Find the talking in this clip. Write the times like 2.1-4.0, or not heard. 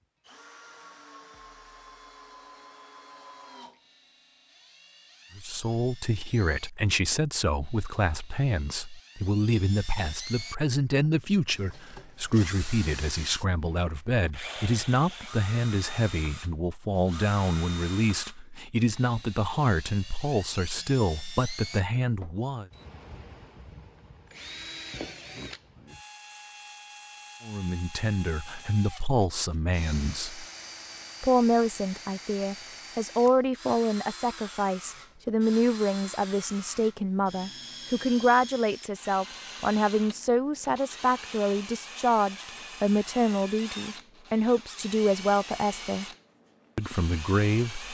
5.3-22.6, 27.4-30.4, 31.2-46.0, 46.8-47.8.